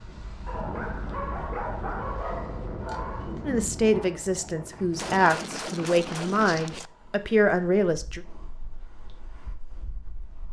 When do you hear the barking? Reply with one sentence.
The barking can be heard from 0.5 to 3.4 s.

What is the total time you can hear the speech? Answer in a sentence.
The speech can be heard for 5 seconds in total.